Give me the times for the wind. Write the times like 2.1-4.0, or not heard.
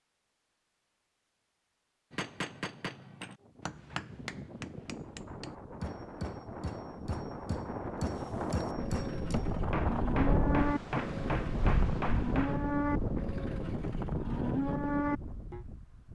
3.4-16.0.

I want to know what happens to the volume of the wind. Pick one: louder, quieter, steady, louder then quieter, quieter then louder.
louder then quieter.